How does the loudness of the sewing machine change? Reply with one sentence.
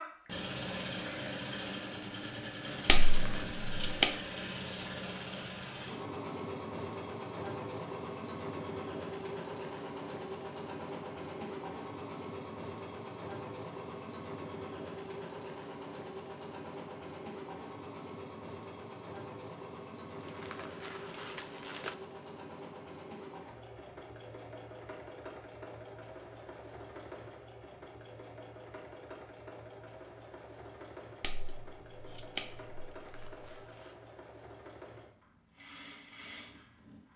The volume of the sewing machine goes down.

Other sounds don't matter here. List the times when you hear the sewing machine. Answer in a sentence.
The sewing machine can be heard from 0.0 to 37.1 s.